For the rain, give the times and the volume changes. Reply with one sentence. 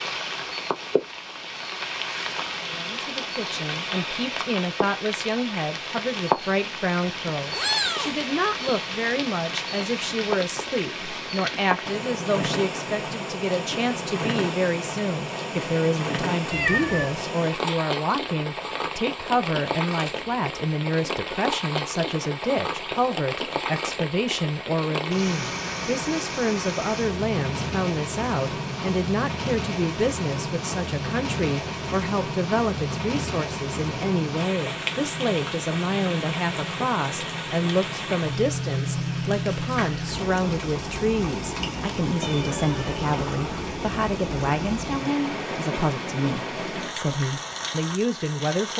You can hear the rain from 0.0 to 48.7 s, at a steady volume.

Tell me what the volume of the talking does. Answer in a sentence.
The loudness of the talking stays about the same.